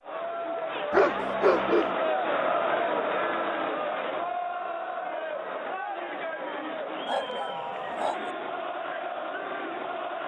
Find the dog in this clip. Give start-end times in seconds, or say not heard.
0.9-1.9, 7.0-8.3.